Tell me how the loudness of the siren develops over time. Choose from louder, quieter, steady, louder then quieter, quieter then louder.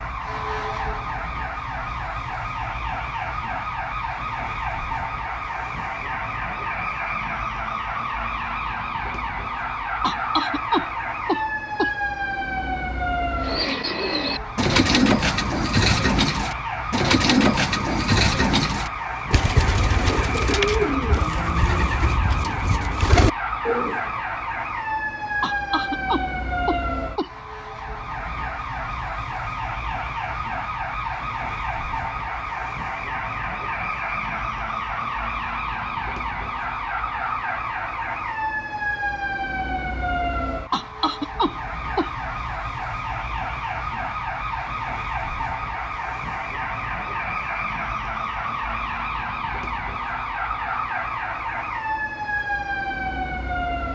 steady.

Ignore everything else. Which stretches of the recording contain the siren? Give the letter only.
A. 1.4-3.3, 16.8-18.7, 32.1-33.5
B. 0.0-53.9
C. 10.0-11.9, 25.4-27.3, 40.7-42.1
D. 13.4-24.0
B.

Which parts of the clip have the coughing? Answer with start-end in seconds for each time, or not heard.
10.0-11.9, 25.4-27.3, 40.7-42.1.